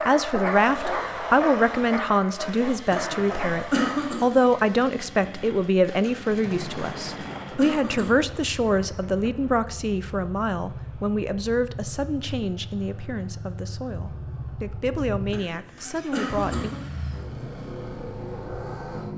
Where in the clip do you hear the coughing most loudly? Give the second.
4 s.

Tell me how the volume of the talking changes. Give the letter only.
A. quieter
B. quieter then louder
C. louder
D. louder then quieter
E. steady
A.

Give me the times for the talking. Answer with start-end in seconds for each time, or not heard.
0.0-16.7.